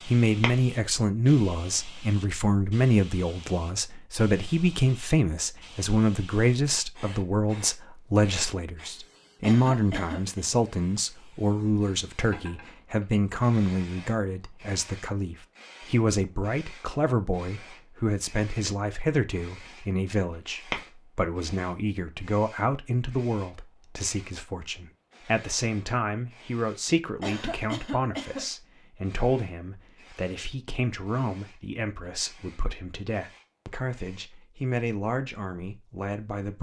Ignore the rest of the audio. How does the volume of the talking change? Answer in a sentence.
The loudness of the talking goes down.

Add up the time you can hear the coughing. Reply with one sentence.
The coughing can be heard for 2 seconds in total.